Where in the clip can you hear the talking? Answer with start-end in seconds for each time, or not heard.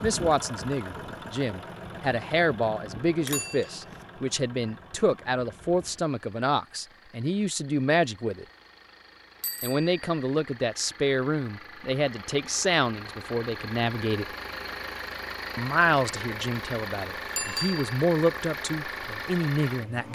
0.0-8.4, 9.6-14.2, 15.6-20.1.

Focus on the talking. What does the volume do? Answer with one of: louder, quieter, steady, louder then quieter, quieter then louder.
steady.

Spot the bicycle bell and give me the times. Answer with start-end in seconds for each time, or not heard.
3.2-4.0, 9.4-10.2, 17.4-17.9.